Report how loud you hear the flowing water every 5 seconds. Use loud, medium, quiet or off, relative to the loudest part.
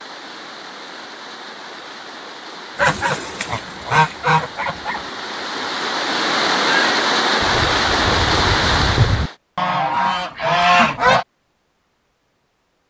quiet, loud, off.